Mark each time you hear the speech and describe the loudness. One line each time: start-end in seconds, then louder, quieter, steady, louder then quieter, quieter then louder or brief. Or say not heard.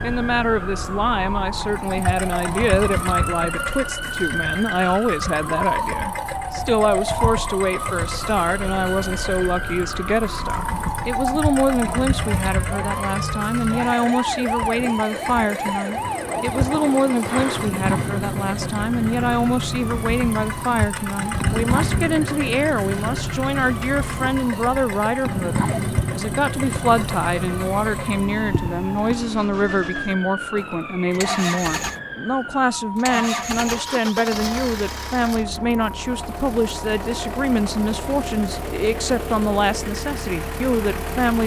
0.0-41.4 steady.